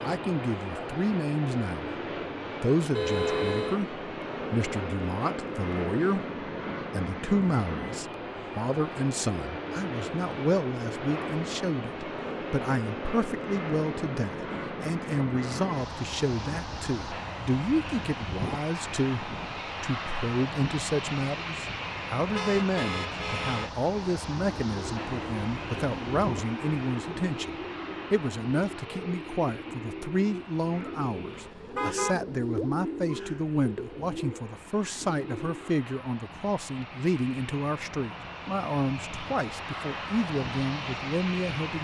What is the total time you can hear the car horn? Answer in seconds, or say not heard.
3 s.